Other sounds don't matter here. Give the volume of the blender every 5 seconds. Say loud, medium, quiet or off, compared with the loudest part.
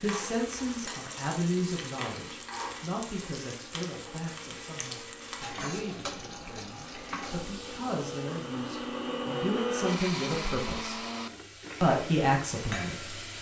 quiet, loud, loud.